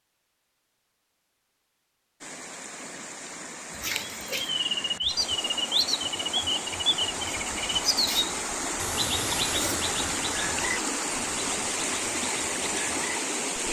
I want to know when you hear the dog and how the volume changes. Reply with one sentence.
You can't hear the dog here.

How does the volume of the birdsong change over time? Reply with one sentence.
The volume of the birdsong goes down.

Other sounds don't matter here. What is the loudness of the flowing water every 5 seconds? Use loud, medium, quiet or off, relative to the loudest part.
medium, loud, loud.